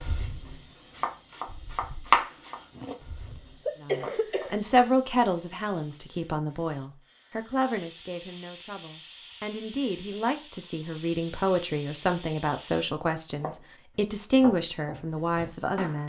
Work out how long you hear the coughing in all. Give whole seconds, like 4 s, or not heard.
2 s.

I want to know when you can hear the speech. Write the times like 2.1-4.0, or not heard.
3.8-16.0.